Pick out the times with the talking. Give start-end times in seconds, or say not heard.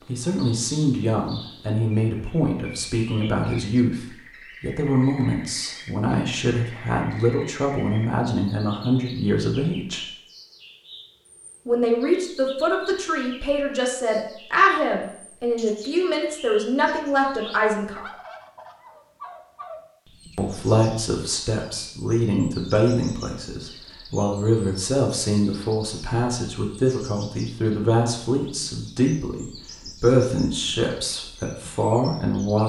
0.1-10.1, 11.7-18.1, 20.4-32.6.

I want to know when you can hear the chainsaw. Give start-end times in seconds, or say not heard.
not heard.